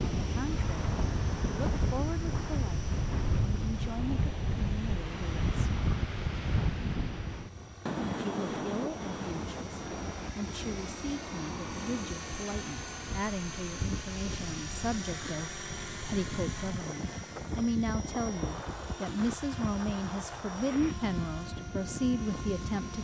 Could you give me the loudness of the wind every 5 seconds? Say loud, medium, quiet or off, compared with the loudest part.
loud, loud, medium, medium, medium.